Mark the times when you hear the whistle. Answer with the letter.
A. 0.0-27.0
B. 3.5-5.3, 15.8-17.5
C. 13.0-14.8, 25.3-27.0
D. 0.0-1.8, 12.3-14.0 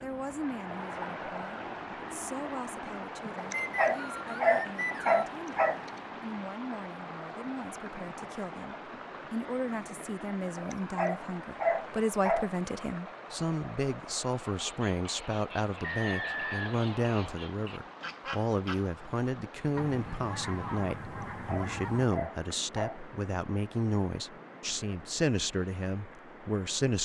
B.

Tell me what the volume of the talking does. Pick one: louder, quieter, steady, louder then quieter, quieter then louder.
louder.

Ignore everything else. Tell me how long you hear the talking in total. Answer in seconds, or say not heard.
27 s.